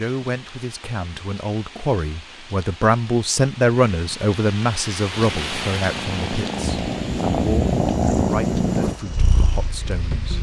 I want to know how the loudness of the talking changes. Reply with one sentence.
The volume of the talking goes up, then down.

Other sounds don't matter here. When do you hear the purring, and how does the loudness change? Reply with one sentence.
You can hear the purring from 5.1 to 10.3 s, getting louder then quieter.